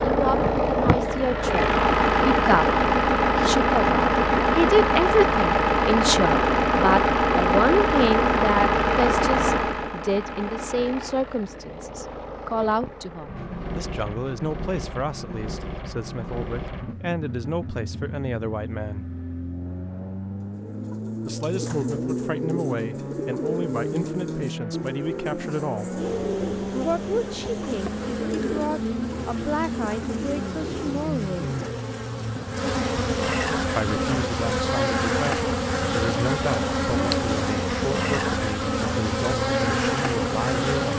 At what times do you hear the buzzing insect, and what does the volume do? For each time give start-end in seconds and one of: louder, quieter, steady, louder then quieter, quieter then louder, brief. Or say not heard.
25.9-40.9 louder.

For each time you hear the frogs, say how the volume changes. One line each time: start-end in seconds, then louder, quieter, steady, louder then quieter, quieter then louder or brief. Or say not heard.
not heard.